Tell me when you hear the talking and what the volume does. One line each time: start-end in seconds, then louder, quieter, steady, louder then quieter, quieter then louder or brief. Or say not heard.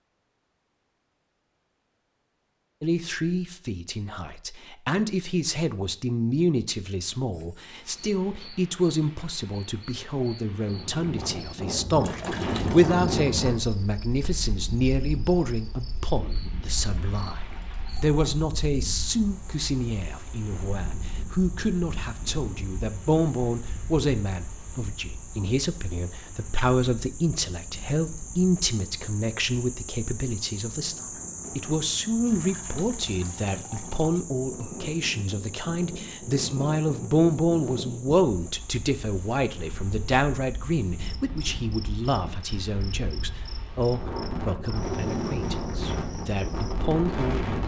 2.8-47.6 steady.